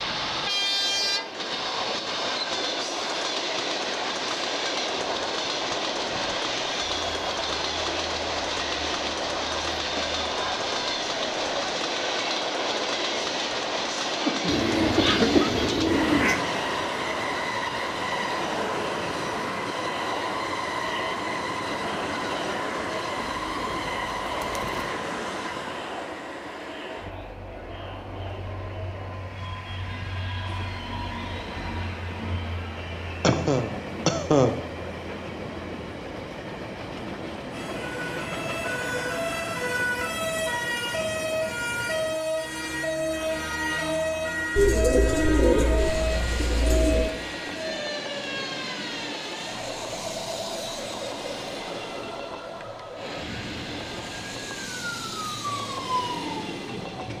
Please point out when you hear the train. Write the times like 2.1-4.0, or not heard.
0.0-57.1.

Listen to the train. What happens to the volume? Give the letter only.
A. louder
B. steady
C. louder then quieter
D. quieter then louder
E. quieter
E.